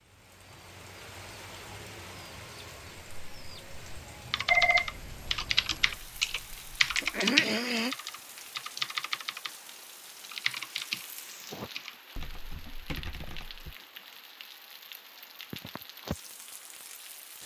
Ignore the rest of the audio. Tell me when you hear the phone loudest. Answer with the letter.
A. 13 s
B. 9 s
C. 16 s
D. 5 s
D.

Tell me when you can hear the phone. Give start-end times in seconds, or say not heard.
4.5-7.1.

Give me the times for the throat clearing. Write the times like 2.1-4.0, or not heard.
7.0-8.0.